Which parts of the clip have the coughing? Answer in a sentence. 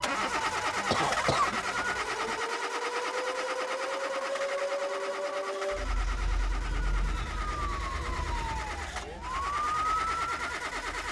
The coughing can be heard from 0.9 to 2.4 s.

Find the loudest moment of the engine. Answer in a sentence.
The loudest moment of the engine is at 1 second.